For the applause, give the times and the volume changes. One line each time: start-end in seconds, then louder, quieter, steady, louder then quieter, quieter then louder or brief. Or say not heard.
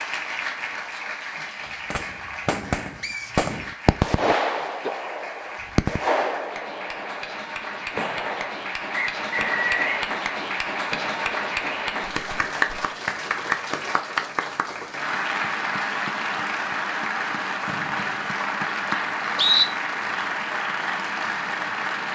0.0-22.1 louder.